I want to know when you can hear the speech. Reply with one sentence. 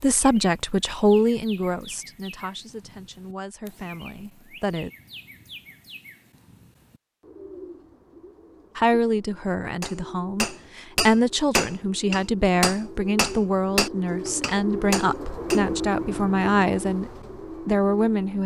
The speech can be heard from 0.0 to 4.9 s and from 8.8 to 18.4 s.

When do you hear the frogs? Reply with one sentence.
The frogs can't be heard in this clip.